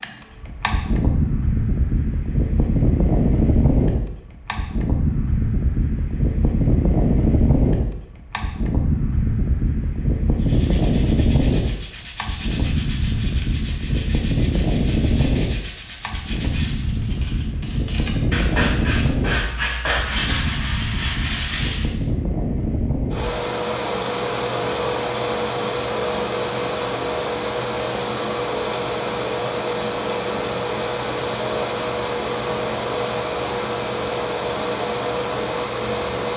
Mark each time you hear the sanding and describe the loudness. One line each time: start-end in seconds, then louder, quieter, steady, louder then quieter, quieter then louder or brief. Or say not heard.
10.3-21.9 louder.